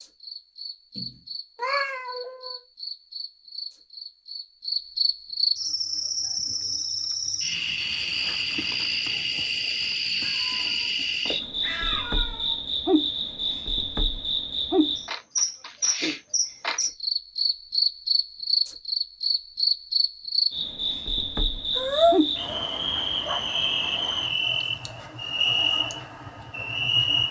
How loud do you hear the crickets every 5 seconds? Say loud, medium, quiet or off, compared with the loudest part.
medium, loud, loud, loud, loud, loud.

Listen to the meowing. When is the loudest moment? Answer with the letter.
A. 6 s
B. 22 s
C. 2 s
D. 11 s
B.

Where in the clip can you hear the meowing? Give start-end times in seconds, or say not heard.
0.9-2.6, 10.2-12.6, 21.8-22.8.